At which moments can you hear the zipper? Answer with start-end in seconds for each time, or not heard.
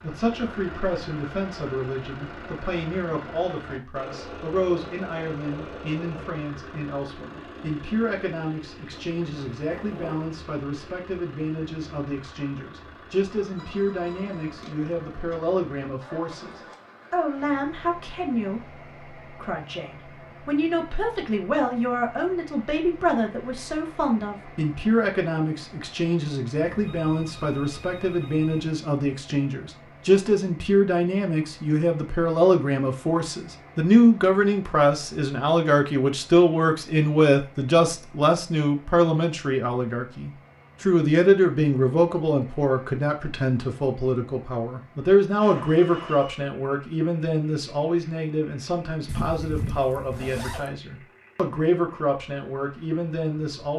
8.9-10.3, 49.0-50.7.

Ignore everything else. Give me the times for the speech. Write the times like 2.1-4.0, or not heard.
0.0-53.7.